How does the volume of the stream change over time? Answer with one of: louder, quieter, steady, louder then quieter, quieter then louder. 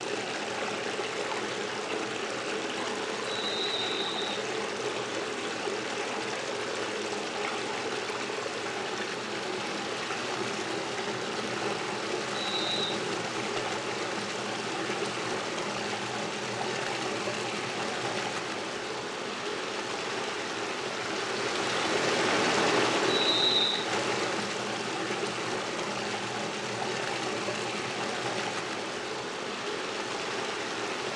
steady.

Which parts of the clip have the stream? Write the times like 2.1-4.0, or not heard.
0.0-31.1.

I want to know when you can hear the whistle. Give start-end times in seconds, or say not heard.
3.2-4.4, 12.4-12.9, 23.1-23.9.